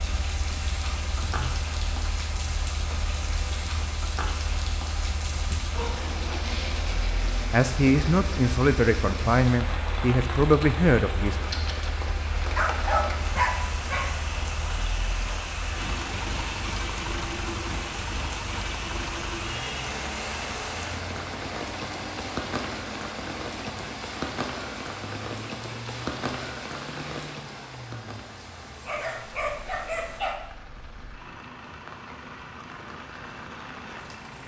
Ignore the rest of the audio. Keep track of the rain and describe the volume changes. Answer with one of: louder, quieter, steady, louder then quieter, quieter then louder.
quieter.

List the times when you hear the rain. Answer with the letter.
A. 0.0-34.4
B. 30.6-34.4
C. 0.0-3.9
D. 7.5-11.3
A.